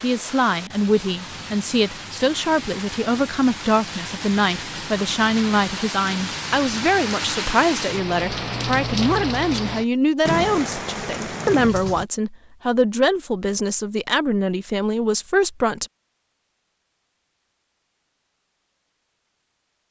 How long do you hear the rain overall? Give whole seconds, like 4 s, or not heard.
12 s.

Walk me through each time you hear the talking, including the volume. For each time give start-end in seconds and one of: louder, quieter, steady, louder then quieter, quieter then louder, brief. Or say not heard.
0.0-15.9 steady.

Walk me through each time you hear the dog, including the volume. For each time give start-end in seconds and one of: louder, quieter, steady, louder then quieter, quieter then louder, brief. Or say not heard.
not heard.